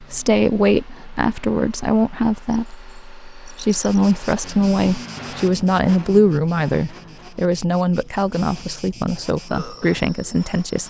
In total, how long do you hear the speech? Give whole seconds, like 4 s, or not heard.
11 s.